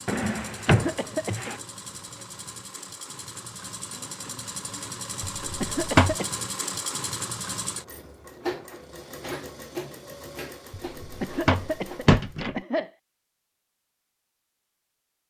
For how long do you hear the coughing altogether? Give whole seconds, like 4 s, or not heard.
3 s.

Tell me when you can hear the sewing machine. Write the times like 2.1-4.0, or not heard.
0.0-12.4.